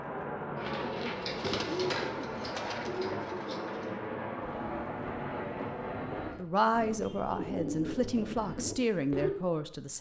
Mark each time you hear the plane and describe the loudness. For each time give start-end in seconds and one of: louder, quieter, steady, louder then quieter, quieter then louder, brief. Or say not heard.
0.0-6.4 steady.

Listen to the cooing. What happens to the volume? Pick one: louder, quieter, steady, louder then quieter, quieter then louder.
quieter then louder.